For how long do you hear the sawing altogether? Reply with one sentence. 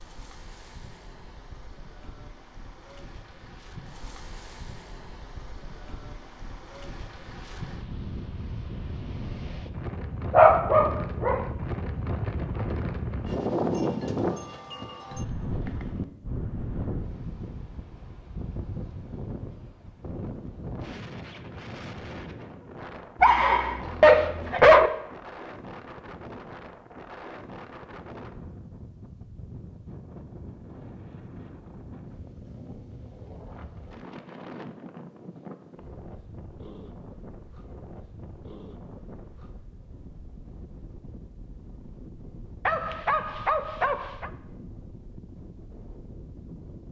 You can't hear the sawing here.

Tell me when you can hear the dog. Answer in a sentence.
You can hear the dog from 10.3 to 11.4 s, from 23.2 to 24.9 s and from 42.6 to 44.3 s.